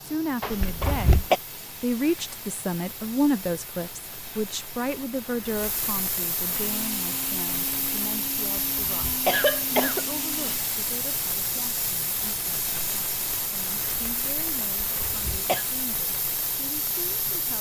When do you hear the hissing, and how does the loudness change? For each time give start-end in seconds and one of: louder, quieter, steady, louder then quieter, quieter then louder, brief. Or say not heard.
0.0-17.5 louder.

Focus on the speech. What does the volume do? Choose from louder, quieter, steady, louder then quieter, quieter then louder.
quieter.